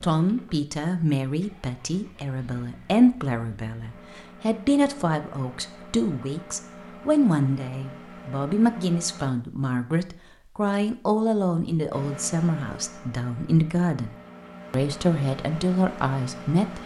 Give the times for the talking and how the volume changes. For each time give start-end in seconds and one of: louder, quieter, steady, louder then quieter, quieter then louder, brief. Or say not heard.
0.0-16.8 steady.